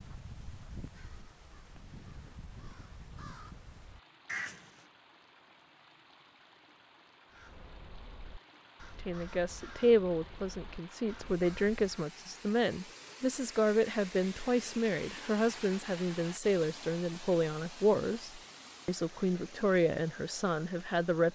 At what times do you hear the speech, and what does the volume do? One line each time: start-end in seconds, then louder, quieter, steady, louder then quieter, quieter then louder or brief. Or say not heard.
9.0-21.2 steady.